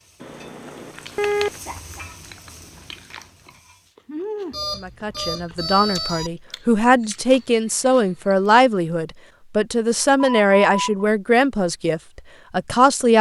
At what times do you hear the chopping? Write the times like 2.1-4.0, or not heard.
not heard.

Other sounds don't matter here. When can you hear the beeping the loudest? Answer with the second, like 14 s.
1 s.